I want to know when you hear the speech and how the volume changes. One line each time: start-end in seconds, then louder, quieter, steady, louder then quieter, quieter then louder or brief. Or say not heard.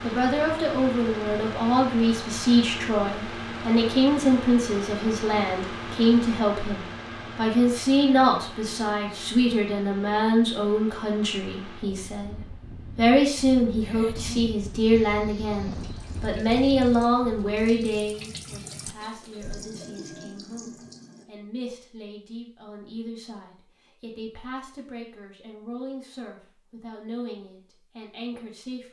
0.0-28.8 quieter.